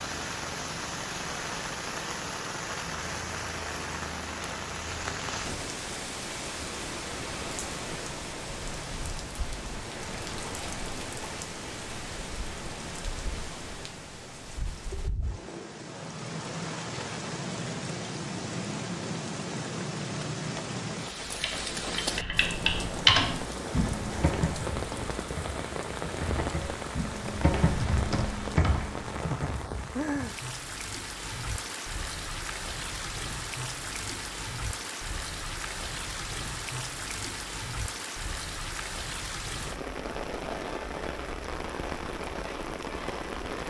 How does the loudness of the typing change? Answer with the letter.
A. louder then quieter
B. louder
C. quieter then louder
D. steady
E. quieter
C.